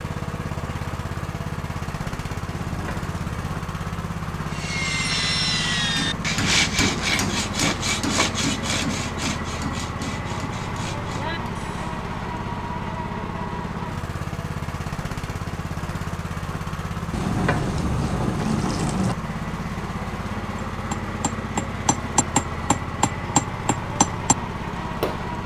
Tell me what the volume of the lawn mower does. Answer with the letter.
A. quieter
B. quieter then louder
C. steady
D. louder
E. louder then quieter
C.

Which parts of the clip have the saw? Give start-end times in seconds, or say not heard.
4.5-11.9.